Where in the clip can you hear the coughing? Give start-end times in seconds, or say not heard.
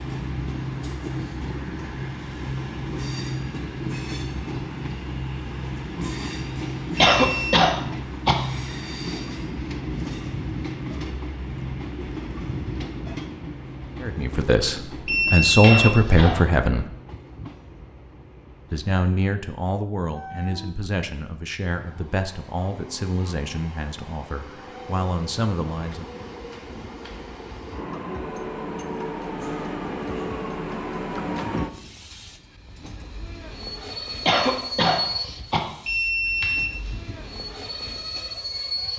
7.0-8.4, 15.6-16.5, 34.2-35.7.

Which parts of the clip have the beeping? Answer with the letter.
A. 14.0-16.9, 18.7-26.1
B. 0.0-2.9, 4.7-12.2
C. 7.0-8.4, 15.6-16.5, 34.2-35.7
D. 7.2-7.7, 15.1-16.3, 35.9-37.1
D.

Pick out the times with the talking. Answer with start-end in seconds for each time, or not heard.
14.0-16.9, 18.7-26.1.